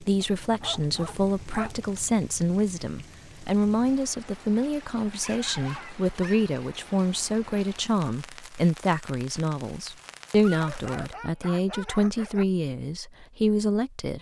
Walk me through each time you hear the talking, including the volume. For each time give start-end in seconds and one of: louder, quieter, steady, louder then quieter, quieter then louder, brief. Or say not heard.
0.0-14.1 steady.